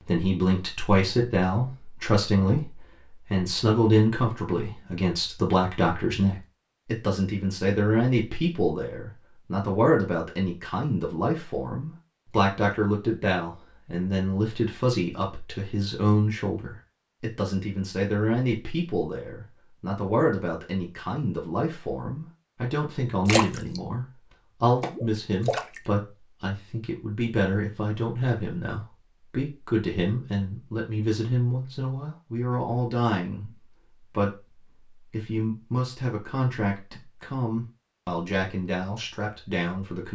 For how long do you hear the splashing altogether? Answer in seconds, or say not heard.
2 s.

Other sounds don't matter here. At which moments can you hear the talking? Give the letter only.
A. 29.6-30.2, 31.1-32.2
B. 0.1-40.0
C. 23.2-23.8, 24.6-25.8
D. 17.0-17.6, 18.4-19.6
B.